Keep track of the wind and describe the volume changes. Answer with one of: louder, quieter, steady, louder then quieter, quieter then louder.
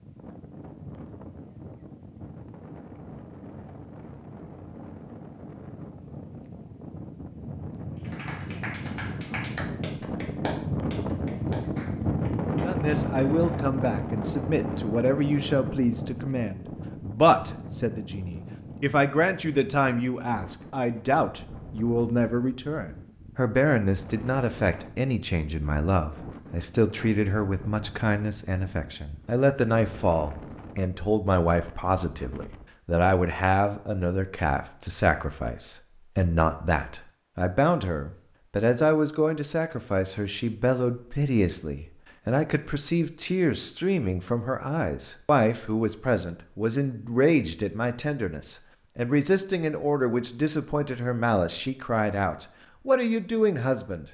louder then quieter.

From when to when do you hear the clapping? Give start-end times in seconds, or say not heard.
8.0-13.6.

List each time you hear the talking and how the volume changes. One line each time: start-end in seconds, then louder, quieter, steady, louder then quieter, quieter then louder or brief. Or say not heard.
12.6-54.0 steady.